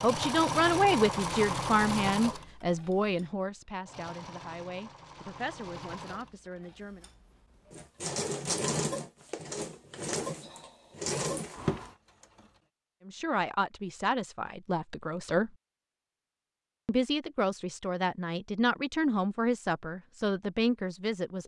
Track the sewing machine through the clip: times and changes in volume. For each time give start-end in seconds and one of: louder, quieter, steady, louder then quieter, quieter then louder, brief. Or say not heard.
0.0-12.4 quieter then louder.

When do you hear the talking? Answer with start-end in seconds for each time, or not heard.
0.0-7.0, 13.1-15.5, 16.9-21.4.